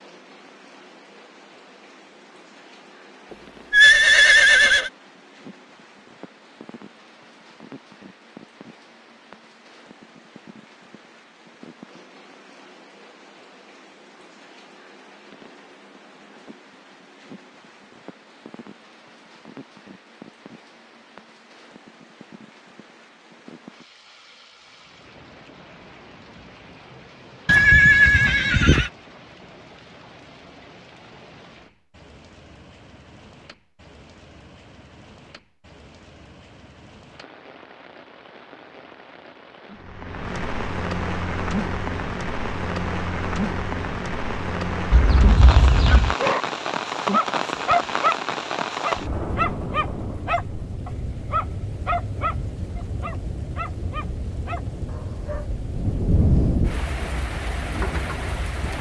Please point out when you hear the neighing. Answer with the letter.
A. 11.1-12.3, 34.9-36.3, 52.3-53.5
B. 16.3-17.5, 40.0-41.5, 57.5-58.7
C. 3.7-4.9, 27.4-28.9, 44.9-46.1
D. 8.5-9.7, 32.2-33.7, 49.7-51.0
C.